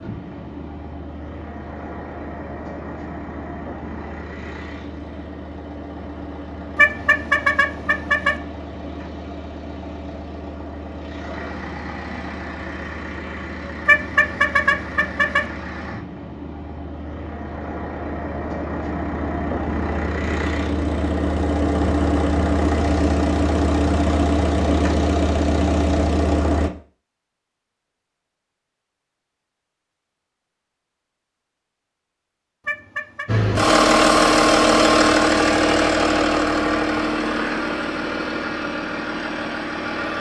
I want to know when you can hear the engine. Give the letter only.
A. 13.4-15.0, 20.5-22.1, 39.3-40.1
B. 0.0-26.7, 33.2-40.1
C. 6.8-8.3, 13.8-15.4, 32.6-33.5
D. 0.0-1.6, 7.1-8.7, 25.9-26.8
B.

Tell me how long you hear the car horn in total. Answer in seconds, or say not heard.
4 s.